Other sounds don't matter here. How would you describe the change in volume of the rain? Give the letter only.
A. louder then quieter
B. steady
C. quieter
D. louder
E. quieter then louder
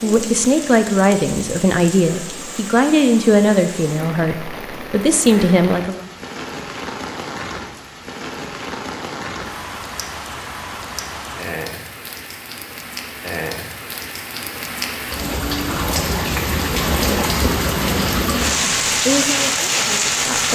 D.